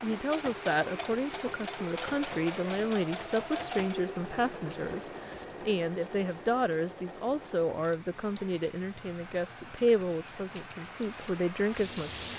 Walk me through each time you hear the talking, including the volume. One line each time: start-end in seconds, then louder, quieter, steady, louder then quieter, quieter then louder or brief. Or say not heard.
0.0-12.3 steady.